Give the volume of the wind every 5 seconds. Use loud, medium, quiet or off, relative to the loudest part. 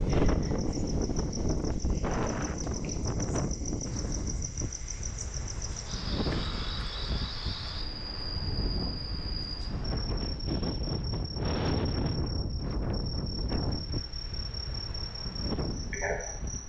loud, medium, loud, medium.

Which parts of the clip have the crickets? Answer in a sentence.
You can hear the crickets from 0.0 to 16.6 s.